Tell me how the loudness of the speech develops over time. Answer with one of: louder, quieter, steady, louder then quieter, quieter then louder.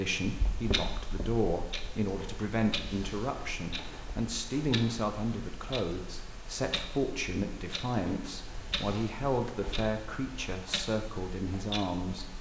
steady.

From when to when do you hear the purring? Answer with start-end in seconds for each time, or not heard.
not heard.